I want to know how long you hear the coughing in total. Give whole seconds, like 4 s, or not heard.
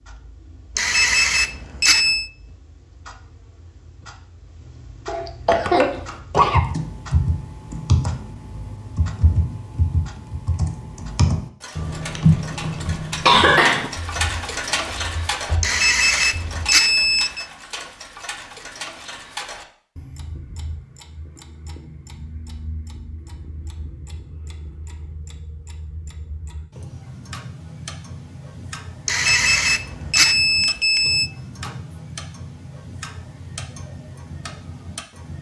3 s.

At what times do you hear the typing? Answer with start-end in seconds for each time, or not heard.
5.5-16.7.